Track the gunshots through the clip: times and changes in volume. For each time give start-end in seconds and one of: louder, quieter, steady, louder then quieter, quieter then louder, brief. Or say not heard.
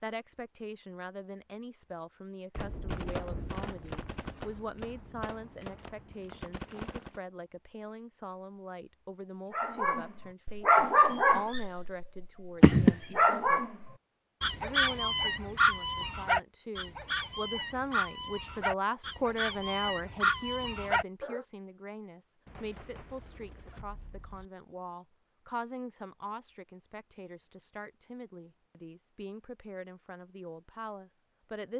2.5-7.2 quieter
22.4-24.4 brief.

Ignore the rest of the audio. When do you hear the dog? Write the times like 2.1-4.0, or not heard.
9.5-21.4.